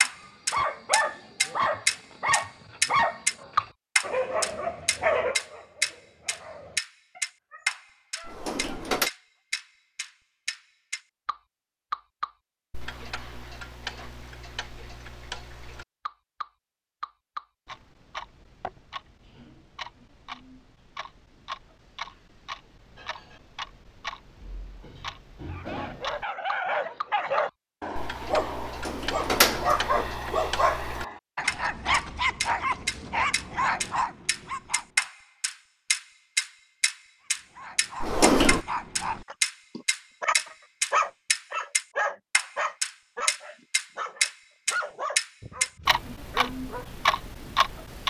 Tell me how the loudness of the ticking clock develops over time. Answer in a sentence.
The loudness of the ticking clock goes down, then up.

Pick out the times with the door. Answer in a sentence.
The door can be heard from 8.2 to 9.1 s, from 28.8 to 29.8 s and from 38.0 to 38.6 s.